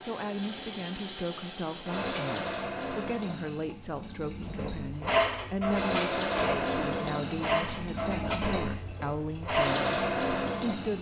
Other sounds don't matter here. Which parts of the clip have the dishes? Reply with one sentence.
You can hear the dishes from 4.4 to 9.7 s.